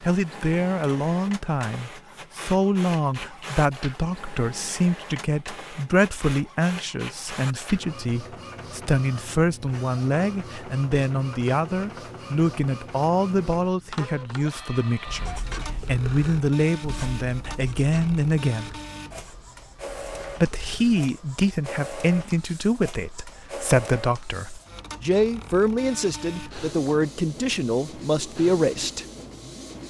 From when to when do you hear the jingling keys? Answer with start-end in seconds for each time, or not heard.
not heard.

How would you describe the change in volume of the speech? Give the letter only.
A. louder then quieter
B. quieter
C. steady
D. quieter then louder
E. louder
C.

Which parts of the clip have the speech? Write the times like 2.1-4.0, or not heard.
0.0-18.8, 20.4-29.1.